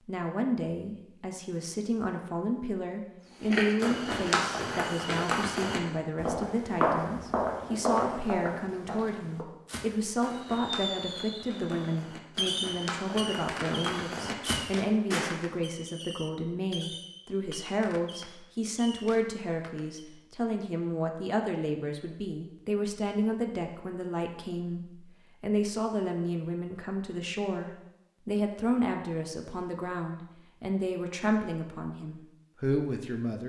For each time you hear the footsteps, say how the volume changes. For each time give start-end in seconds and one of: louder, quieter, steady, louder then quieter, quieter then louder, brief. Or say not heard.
3.4-15.3 quieter then louder.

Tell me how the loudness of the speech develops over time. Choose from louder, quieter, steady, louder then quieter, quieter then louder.
steady.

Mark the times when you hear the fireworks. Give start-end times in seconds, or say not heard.
10.3-20.1.